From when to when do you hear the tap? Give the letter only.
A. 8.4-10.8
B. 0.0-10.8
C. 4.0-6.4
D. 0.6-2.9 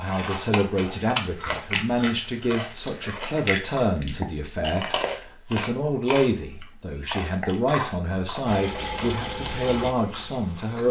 A.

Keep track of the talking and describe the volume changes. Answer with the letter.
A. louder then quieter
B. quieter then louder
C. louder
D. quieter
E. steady
E.